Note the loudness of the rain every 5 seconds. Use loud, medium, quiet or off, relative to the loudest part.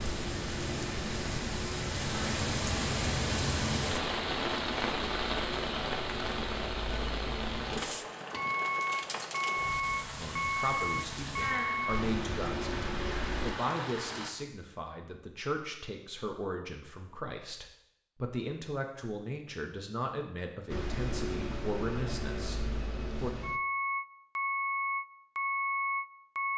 loud, loud, medium, off, off, off.